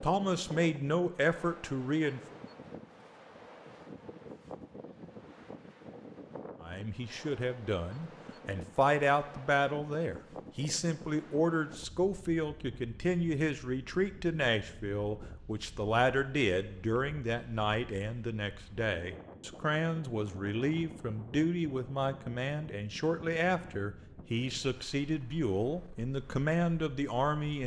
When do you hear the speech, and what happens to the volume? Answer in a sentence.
The speech can be heard briefly from 0.0 to 2.4 s; and from 6.6 to 27.6 s, at a steady volume.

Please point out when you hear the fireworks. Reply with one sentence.
You can't hear the fireworks here.